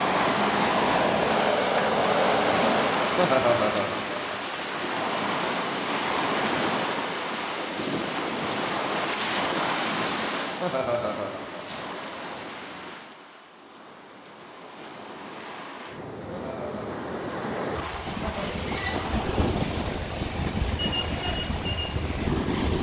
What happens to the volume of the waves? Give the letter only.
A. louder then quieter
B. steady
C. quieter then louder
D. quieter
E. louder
C.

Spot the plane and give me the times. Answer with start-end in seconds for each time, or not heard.
0.0-3.2.